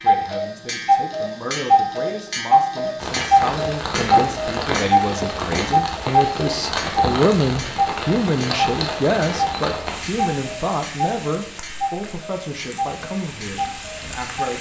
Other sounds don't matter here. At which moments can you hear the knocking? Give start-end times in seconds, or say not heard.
not heard.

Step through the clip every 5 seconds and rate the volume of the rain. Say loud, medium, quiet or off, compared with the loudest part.
loud, loud, medium.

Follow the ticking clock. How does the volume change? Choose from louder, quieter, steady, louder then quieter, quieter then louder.
quieter.